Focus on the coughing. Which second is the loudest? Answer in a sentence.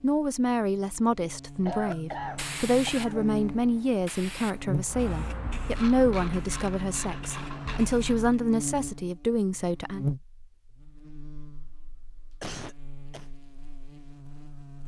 The loudest moment of the coughing is at 2 seconds.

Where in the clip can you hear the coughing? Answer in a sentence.
The coughing can be heard from 1.6 to 3.3 s and from 12.4 to 13.3 s.